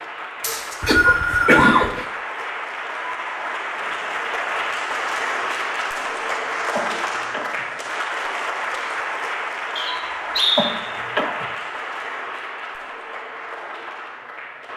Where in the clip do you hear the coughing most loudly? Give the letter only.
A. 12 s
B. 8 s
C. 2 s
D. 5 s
C.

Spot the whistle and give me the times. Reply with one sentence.
You can hear the whistle from 0.4 to 1.8 s and from 9.8 to 10.7 s.